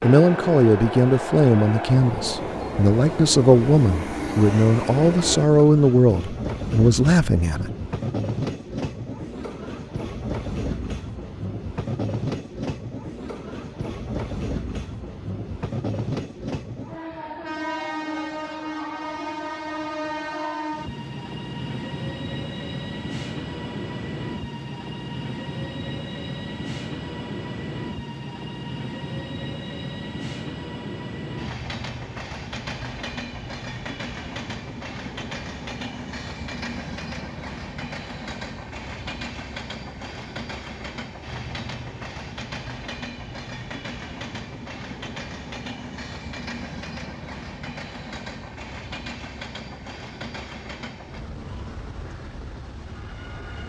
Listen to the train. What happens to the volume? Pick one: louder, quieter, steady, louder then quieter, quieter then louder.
quieter.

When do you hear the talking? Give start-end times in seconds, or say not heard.
0.0-7.7.